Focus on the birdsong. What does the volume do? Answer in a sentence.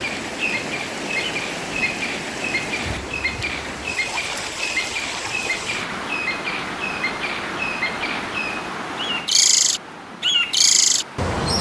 The volume of the birdsong goes up.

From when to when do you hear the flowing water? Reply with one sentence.
The flowing water can be heard from 0.0 to 11.3 s.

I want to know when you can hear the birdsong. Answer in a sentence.
The birdsong can be heard from 0.0 to 11.5 s.